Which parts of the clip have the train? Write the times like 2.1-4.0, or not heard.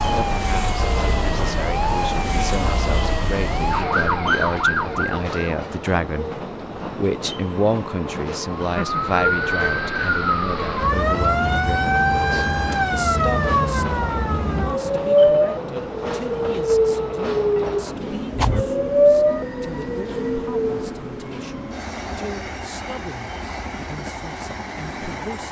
0.0-25.4.